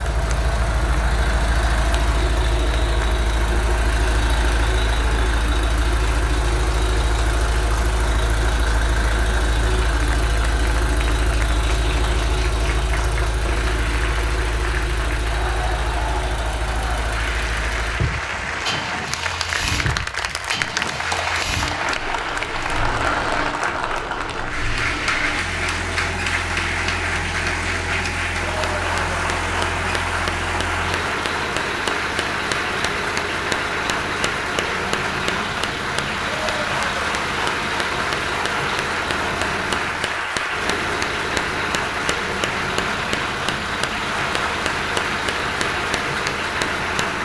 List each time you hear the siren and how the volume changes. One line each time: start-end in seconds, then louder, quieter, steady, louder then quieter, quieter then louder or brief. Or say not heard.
not heard.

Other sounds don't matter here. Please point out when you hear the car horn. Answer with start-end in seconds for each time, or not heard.
not heard.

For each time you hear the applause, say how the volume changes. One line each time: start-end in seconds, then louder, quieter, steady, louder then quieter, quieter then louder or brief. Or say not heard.
0.0-47.2 louder.